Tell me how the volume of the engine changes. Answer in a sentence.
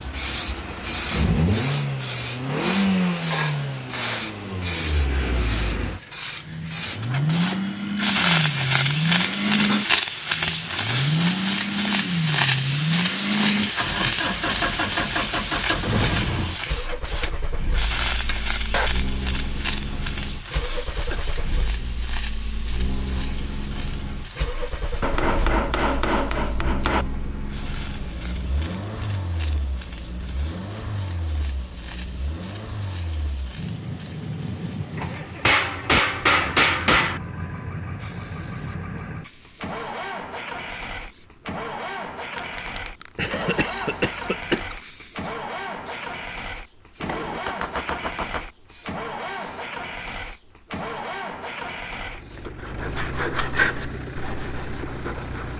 The loudness of the engine goes down.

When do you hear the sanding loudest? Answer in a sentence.
The volume of the sanding peaks at 54 seconds.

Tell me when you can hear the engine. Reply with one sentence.
The engine can be heard from 0.0 to 55.5 s.